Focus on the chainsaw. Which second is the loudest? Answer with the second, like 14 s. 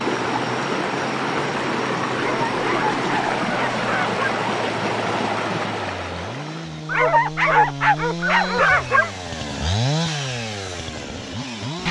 10 s.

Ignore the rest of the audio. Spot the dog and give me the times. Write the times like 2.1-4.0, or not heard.
2.1-4.2, 6.8-9.1.